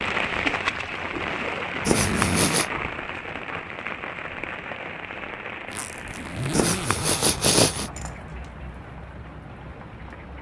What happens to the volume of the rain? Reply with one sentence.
The volume of the rain goes down.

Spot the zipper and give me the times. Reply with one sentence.
The zipper can be heard from 1.9 to 2.6 s and from 5.7 to 8.1 s.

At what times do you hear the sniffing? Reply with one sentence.
You can hear the sniffing from 1.9 to 2.6 s and from 6.5 to 7.9 s.